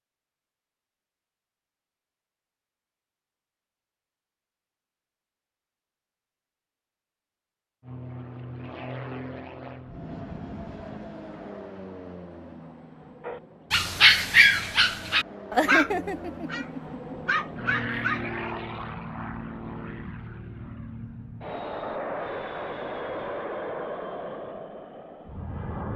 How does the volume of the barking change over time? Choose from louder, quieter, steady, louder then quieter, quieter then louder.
quieter then louder.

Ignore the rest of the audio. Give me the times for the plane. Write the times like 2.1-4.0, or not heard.
7.8-25.9.